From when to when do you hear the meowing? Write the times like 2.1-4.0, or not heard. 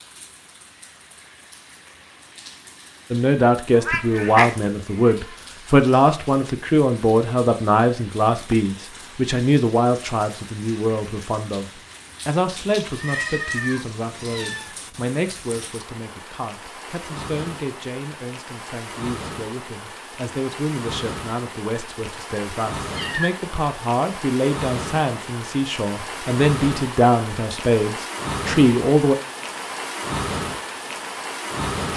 3.8-5.2, 12.8-14.8, 22.8-23.3.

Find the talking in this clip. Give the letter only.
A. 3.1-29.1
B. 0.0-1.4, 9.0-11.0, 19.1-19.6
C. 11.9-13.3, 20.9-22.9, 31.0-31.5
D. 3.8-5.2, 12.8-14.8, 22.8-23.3
A.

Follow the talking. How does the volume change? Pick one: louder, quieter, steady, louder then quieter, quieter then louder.
quieter then louder.